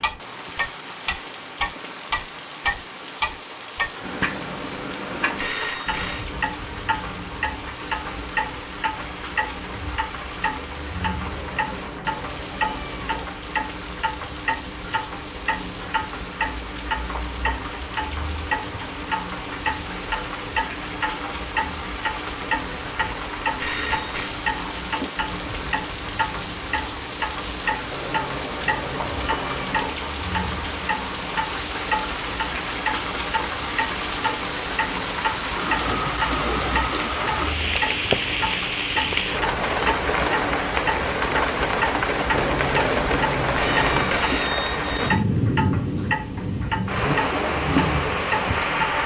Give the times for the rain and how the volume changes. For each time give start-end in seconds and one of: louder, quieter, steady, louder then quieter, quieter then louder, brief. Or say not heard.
0.0-49.0 louder.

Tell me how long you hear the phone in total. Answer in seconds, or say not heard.
3 s.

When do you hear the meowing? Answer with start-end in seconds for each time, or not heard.
11.2-13.2, 27.9-29.9, 42.3-44.2.